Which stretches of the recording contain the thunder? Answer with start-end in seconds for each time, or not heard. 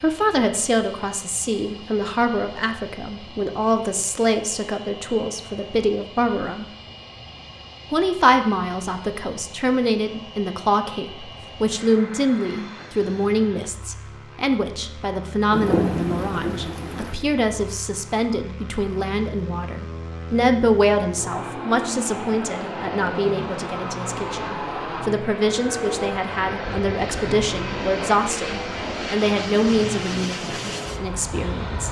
15.5-17.1.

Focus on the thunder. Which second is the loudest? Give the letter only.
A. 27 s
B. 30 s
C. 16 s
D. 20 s
C.